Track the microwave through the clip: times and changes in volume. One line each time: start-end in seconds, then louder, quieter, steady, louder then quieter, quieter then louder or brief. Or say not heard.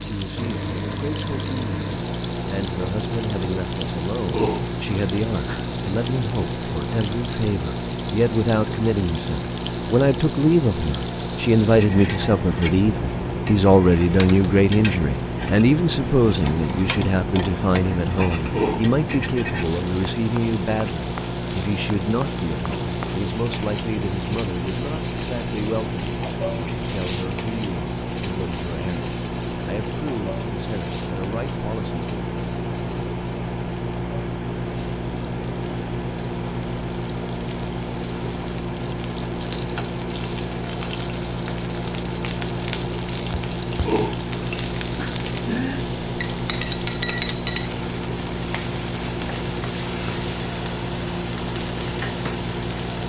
0.0-53.0 steady.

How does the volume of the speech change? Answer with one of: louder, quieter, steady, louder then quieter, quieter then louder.
louder then quieter.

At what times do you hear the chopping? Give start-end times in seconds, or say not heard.
not heard.